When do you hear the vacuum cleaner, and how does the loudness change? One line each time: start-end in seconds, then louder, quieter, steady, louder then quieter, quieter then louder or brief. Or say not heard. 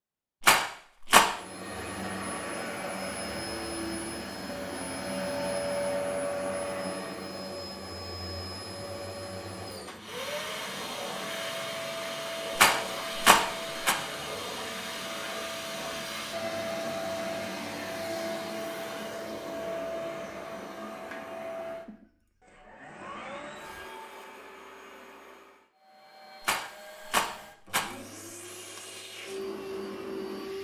1.2-30.6 quieter.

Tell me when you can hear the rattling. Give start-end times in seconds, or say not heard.
0.4-1.2, 12.6-13.9, 26.4-27.9.